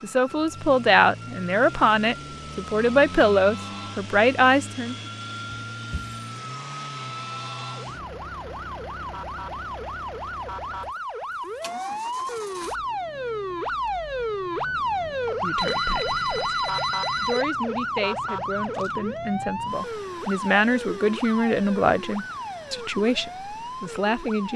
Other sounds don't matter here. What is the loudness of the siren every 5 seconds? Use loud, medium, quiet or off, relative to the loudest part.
quiet, medium, loud, loud, medium.